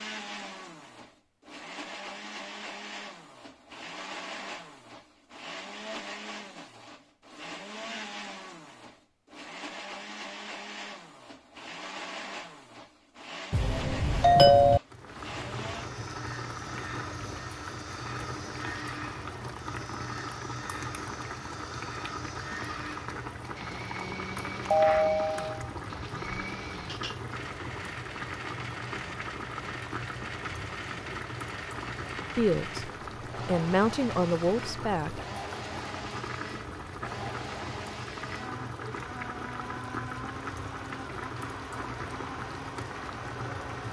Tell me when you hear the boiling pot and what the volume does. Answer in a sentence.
The boiling pot can be heard from 14.8 to 43.8 s, at a steady volume.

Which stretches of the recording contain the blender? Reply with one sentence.
You can hear the blender from 0.0 to 43.8 s.